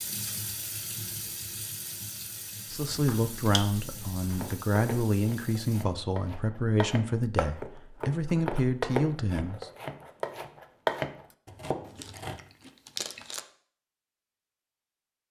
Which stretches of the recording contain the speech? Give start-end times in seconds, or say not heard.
2.7-9.7.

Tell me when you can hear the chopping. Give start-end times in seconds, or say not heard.
4.2-12.4.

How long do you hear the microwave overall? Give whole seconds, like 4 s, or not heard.
not heard.